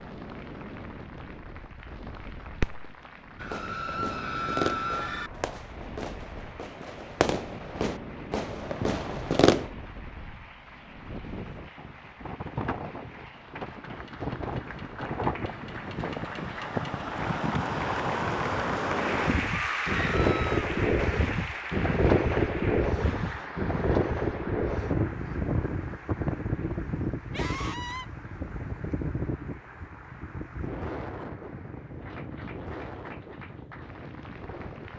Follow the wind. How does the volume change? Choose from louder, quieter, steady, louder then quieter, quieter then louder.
louder then quieter.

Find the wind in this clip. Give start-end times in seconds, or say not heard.
0.0-34.9.